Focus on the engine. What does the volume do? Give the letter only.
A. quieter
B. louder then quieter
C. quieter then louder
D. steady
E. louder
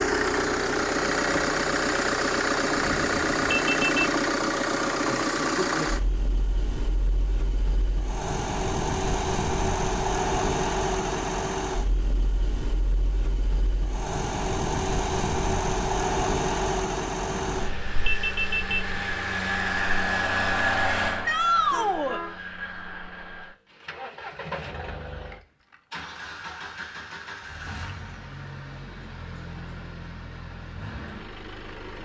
A.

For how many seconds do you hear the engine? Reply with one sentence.
You can hear the engine for 32 seconds altogether.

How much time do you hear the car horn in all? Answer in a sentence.
The car horn can be heard for 4 seconds in total.